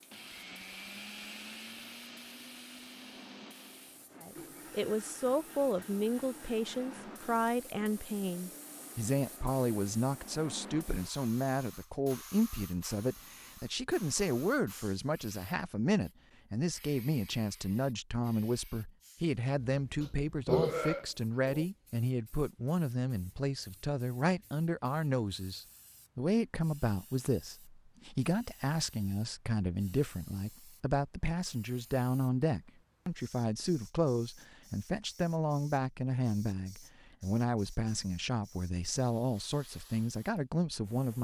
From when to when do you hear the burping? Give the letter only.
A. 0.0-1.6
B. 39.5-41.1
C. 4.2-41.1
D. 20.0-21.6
D.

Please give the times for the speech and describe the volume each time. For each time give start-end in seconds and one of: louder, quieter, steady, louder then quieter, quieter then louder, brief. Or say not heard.
4.2-41.1 steady.